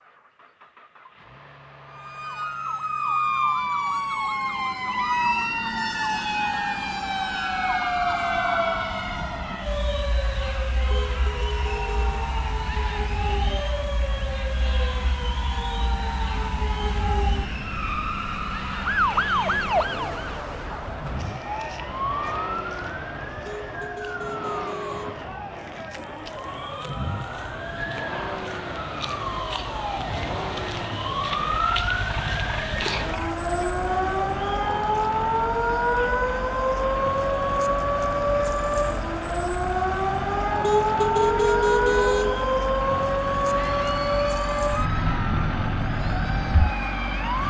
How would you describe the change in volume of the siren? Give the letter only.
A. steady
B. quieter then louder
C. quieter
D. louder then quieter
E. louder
B.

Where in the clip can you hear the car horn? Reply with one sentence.
The car horn can be heard from 10.9 to 12.0 s, from 23.4 to 25.2 s and from 40.6 to 42.5 s.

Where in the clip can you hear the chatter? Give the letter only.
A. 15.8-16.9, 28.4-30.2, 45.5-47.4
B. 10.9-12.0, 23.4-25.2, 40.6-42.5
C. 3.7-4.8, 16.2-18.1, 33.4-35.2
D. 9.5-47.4
D.